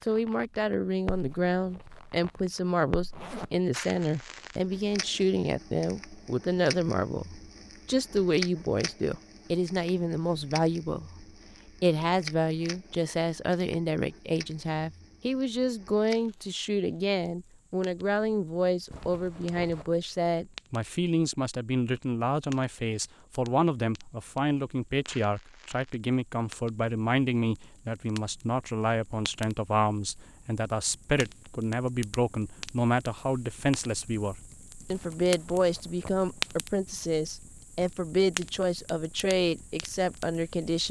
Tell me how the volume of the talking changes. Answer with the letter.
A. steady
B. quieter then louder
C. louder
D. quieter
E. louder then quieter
A.